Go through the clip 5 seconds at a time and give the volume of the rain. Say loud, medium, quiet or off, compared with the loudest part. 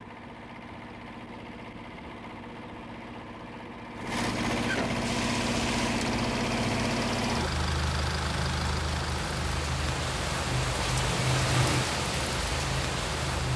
off, medium, loud.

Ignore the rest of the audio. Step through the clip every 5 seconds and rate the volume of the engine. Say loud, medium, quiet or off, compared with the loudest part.
medium, loud, medium.